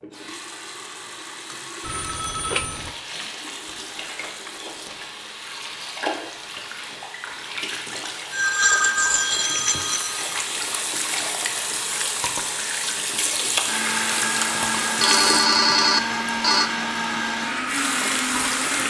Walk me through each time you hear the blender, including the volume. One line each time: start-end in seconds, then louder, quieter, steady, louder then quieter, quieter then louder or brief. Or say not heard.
13.7-18.8 steady.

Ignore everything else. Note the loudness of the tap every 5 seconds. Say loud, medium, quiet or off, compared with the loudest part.
medium, medium, loud, loud.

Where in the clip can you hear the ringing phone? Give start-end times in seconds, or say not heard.
1.8-3.0, 8.3-10.4, 15.0-16.7.